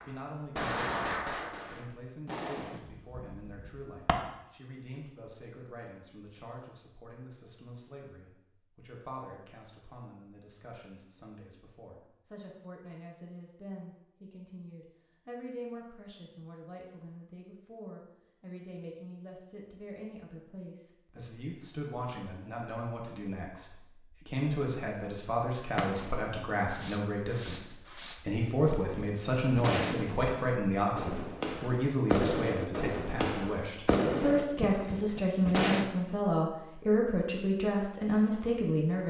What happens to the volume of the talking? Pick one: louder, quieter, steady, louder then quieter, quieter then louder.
louder.